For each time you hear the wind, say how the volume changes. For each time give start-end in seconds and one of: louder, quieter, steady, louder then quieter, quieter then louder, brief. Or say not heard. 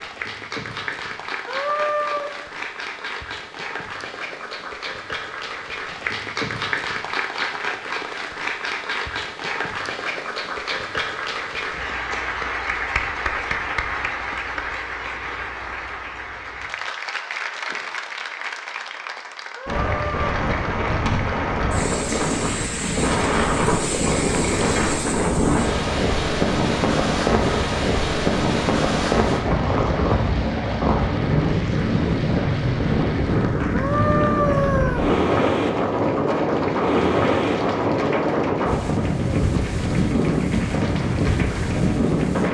19.6-42.4 steady.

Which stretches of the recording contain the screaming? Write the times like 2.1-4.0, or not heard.
1.4-2.4, 19.6-20.3, 33.7-35.1.